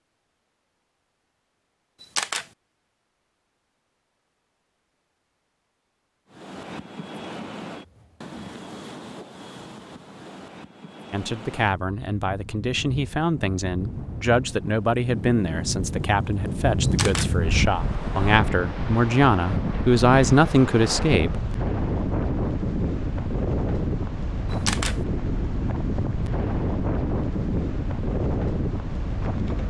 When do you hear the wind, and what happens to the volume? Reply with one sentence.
The wind can be heard from 6.3 to 29.6 s, getting louder.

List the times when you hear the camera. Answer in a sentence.
The camera can be heard from 2.0 to 2.5 s, from 16.8 to 17.3 s and from 24.5 to 25.0 s.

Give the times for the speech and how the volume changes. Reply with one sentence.
The speech can be heard from 11.1 to 21.4 s, getting louder.